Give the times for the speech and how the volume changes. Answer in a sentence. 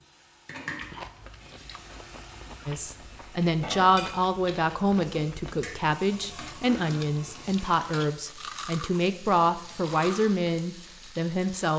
The speech can be heard from 2.6 to 11.7 s, at a steady volume.